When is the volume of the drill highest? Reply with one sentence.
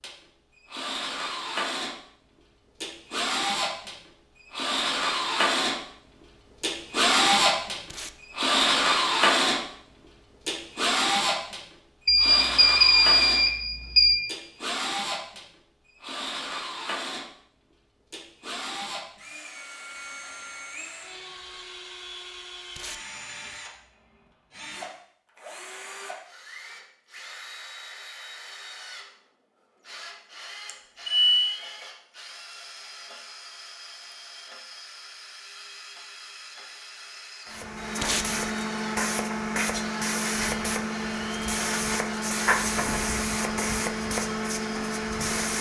The volume of the drill peaks at 9 seconds.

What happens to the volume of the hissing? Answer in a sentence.
The volume of the hissing stays about the same.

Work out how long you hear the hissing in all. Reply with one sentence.
The hissing can be heard for 8 seconds in total.